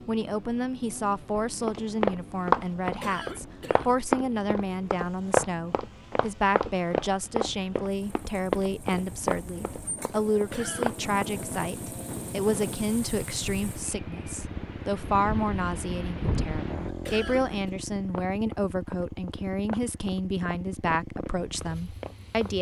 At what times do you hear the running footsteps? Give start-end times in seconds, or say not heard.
1.4-11.3, 18.1-22.5.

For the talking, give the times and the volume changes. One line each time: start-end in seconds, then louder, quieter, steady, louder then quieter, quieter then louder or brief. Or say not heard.
0.1-22.5 steady.